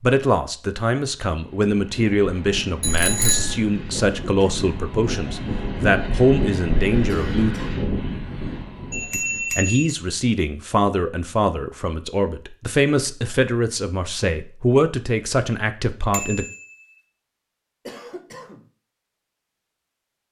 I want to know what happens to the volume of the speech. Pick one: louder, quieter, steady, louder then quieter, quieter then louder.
steady.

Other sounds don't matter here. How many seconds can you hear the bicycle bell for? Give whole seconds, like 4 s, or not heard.
3 s.